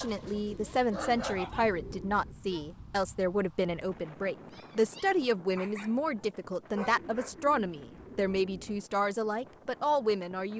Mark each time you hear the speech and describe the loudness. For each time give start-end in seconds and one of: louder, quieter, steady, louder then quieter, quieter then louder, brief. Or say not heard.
0.0-10.5 steady.